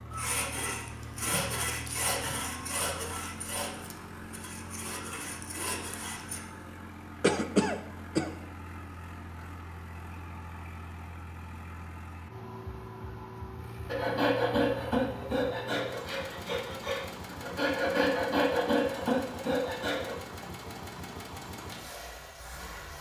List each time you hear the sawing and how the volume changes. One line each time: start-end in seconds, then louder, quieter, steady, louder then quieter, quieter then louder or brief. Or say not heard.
0.1-6.4 quieter then louder
13.8-20.1 quieter then louder.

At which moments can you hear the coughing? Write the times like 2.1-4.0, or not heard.
7.2-8.3.